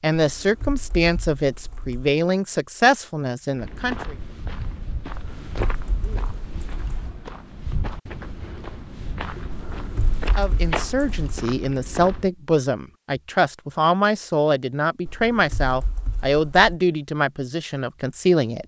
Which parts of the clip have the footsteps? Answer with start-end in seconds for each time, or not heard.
3.5-12.3.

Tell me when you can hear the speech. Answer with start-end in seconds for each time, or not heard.
0.0-4.2, 10.3-18.6.